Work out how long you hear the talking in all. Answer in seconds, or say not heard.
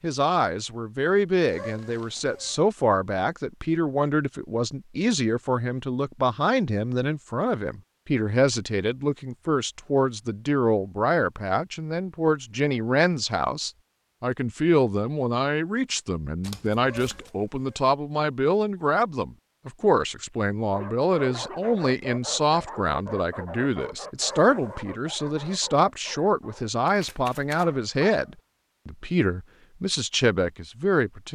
31 s.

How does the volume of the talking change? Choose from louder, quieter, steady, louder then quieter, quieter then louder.
steady.